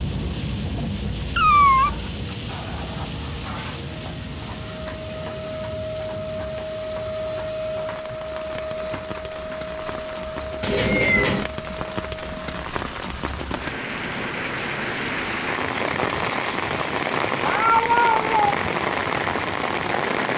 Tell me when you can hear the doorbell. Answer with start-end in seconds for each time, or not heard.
not heard.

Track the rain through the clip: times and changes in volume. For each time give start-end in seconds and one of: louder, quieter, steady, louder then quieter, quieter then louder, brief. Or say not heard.
0.0-20.3 quieter then louder.